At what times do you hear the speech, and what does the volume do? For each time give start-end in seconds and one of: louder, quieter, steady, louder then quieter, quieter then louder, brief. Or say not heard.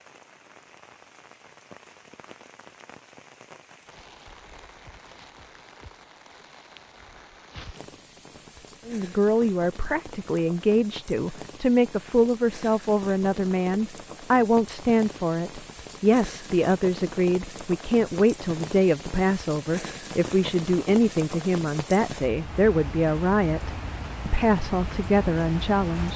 8.8-26.1 steady.